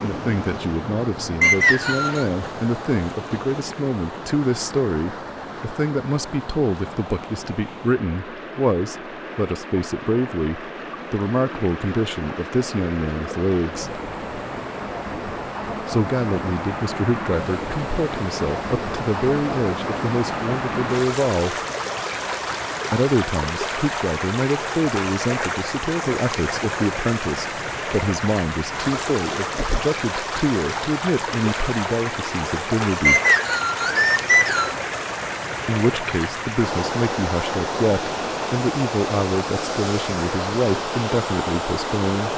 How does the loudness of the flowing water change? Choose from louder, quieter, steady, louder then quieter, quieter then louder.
louder.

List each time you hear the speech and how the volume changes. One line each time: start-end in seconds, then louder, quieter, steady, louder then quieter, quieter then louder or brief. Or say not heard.
0.0-14.0 steady
15.8-21.6 steady
22.9-33.2 steady
35.6-42.3 steady.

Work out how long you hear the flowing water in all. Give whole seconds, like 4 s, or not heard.
42 s.